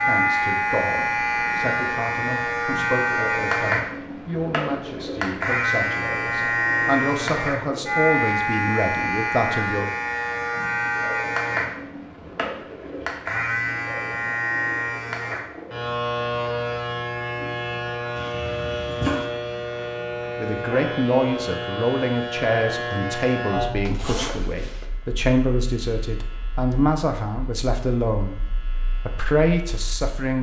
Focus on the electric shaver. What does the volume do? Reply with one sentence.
The loudness of the electric shaver goes down.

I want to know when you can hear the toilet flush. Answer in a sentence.
The toilet flush can be heard from 18.1 to 19.2 s.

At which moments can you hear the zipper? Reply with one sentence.
The zipper can be heard from 23.9 to 24.9 s.